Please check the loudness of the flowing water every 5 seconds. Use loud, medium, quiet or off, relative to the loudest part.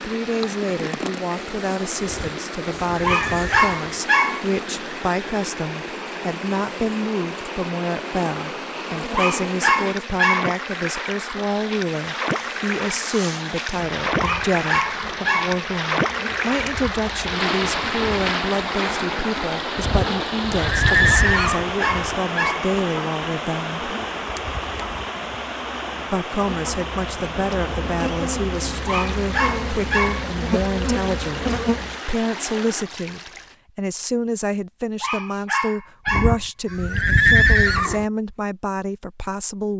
medium, medium, loud, loud, loud, medium, medium, off.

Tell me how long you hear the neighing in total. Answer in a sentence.
You can hear the neighing for 6 seconds altogether.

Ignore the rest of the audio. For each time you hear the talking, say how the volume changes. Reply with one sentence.
You can hear the talking from 0.0 to 23.9 s, at a steady volume; and from 26.1 to 39.7 s, at a steady volume.